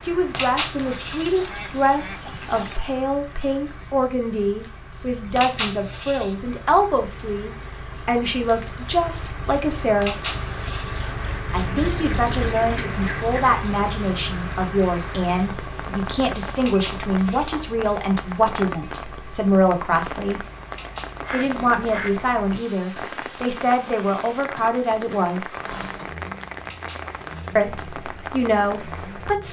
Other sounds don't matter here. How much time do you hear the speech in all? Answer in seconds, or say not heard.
25 s.